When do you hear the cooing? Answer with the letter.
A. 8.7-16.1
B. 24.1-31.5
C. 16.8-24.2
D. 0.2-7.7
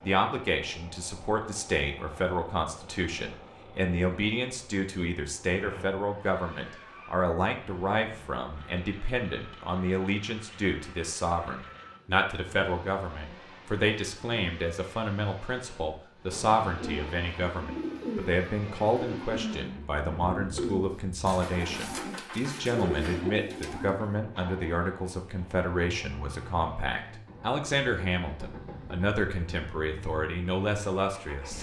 C.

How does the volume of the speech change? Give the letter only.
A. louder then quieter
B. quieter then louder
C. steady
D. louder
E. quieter
C.